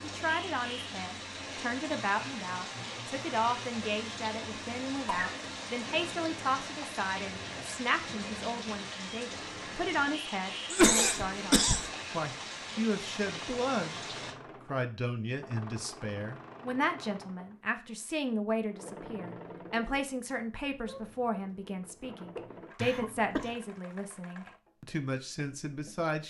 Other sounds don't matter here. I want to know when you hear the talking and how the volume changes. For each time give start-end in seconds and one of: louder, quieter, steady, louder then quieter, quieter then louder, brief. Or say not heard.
0.0-26.2 steady.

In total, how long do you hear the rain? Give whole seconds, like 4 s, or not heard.
14 s.